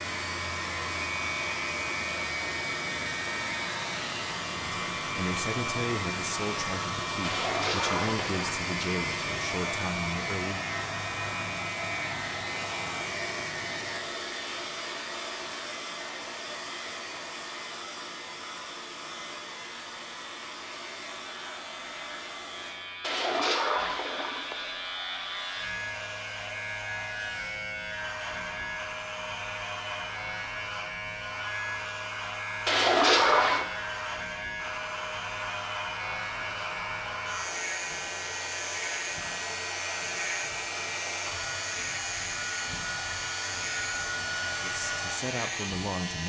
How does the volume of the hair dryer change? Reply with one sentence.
The loudness of the hair dryer goes down, then up.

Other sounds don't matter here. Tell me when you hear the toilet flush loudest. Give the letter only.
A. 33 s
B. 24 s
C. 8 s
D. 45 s
A.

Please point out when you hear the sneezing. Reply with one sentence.
You can't hear the sneezing here.